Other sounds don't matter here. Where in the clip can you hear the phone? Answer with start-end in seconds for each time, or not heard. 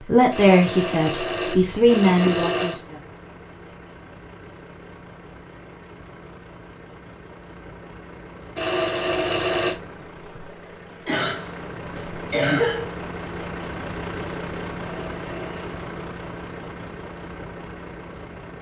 0.3-2.8, 8.6-9.8, 14.8-15.8.